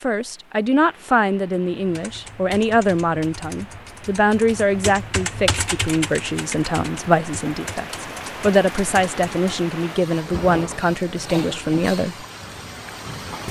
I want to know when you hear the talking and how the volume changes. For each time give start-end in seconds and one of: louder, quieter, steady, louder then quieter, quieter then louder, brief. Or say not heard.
0.0-12.2 steady.